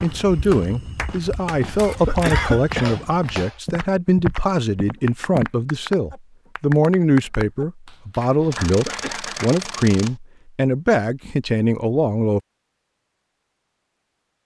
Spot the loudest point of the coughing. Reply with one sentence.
The volume of the coughing peaks at 2 seconds.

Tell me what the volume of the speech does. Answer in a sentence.
The volume of the speech stays about the same.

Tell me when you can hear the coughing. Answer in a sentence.
The coughing can be heard from 1.8 to 3.1 s and from 8.4 to 9.2 s.